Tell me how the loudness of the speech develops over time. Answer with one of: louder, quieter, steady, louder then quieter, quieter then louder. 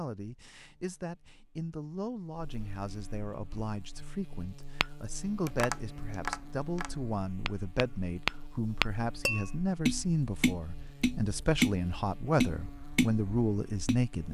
louder.